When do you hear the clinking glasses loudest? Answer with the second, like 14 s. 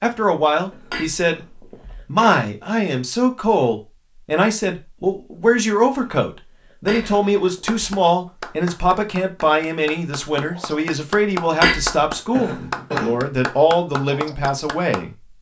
12 s.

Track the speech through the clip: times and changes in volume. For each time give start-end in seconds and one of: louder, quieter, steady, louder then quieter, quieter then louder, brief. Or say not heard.
0.0-15.1 steady.